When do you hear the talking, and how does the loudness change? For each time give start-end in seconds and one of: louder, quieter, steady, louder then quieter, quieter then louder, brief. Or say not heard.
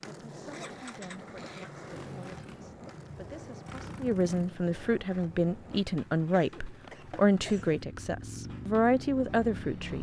0.0-9.9 louder.